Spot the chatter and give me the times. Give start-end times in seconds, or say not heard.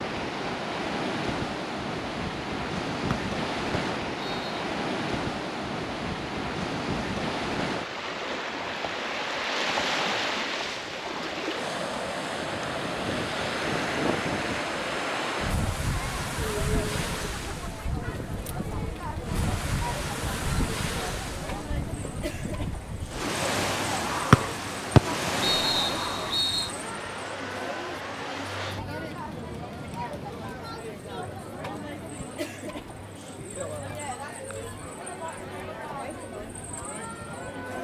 11.5-37.7.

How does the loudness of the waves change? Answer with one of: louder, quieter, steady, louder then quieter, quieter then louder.
quieter.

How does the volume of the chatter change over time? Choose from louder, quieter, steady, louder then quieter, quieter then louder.
steady.